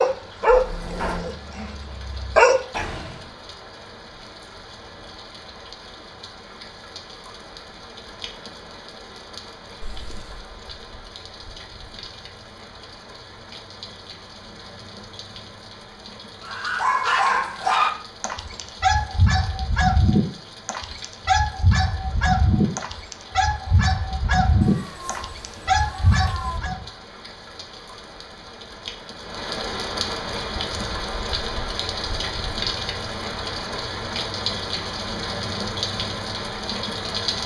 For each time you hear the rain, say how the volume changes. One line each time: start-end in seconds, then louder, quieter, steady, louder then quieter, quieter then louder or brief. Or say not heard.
0.0-37.4 louder.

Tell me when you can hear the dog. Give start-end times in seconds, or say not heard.
0.0-3.2, 16.4-26.9.